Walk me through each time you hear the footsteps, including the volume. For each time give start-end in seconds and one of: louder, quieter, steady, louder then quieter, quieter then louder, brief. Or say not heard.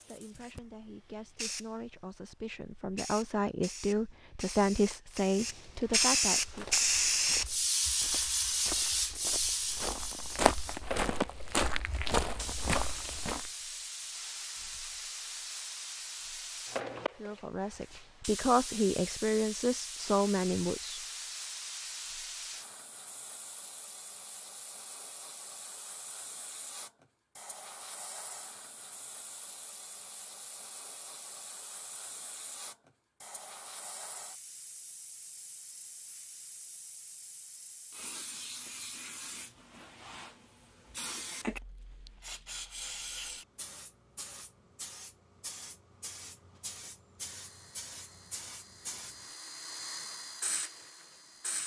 6.4-13.5 louder.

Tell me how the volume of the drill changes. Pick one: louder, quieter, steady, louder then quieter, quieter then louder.
louder then quieter.